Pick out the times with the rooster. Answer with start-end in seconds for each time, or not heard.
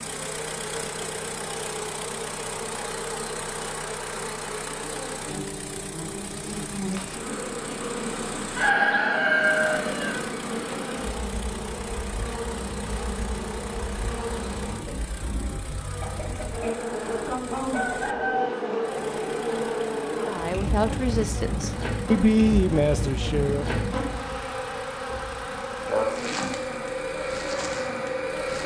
8.6-10.2, 16.0-18.5.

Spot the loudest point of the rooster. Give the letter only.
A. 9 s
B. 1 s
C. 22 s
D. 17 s
A.